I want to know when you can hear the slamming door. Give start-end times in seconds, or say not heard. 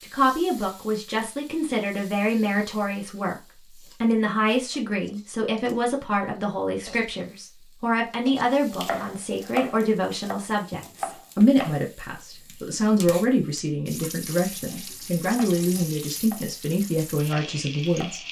not heard.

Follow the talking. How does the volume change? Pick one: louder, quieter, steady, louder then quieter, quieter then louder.
steady.